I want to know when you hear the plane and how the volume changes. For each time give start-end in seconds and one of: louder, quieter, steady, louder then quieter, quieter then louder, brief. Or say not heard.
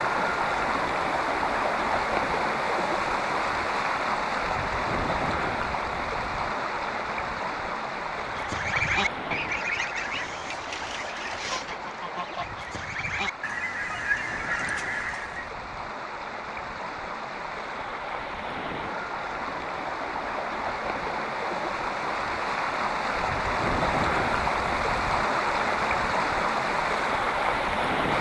not heard.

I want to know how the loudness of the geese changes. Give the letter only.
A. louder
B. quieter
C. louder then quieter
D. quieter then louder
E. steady
D.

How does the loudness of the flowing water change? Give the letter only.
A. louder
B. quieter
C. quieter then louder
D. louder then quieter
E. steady
C.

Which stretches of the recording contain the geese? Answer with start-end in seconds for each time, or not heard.
8.2-15.5.